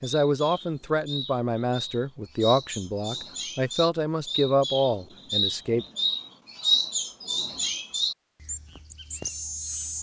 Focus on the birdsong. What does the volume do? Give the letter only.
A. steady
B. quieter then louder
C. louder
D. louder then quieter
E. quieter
D.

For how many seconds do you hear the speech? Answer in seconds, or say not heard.
6 s.